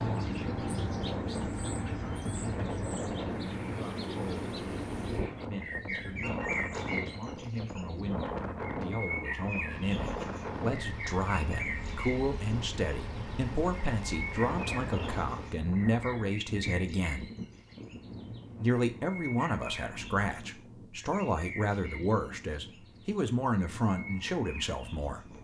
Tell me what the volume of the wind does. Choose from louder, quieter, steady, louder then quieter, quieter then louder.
quieter.